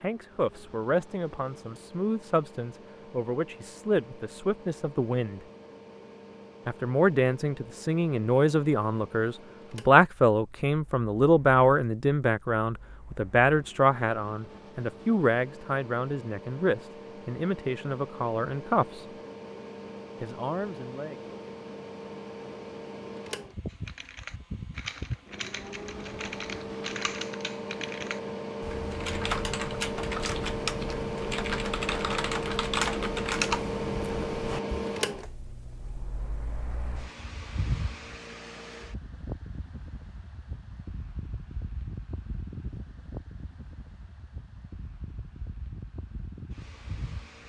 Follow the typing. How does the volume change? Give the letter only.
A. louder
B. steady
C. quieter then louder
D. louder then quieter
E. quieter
A.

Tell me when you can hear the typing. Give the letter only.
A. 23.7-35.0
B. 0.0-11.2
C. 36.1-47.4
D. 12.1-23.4
A.